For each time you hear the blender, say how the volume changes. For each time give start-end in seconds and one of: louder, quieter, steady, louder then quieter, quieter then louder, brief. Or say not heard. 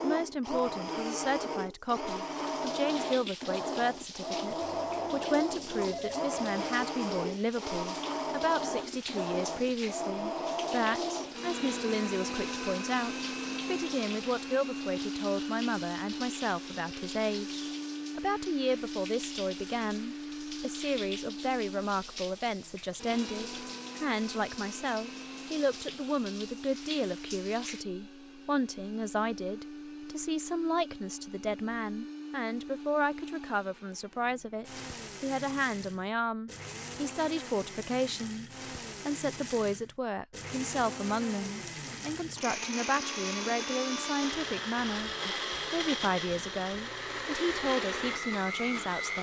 0.0-49.1 quieter then louder.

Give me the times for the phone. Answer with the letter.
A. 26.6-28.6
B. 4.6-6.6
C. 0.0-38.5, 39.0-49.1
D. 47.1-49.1
B.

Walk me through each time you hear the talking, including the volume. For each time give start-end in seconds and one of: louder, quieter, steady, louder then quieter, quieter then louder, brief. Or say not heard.
0.0-38.5 steady
39.0-49.1 steady.